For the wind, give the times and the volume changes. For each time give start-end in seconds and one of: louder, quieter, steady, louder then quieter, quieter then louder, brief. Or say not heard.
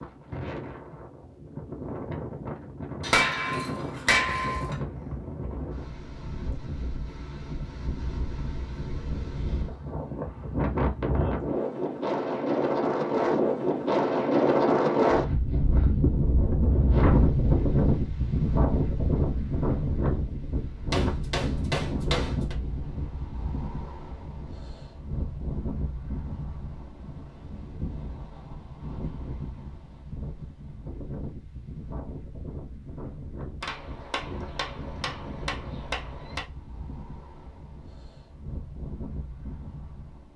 0.0-40.3 louder then quieter.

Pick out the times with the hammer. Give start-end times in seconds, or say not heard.
3.0-4.8, 20.9-22.6, 33.6-36.5.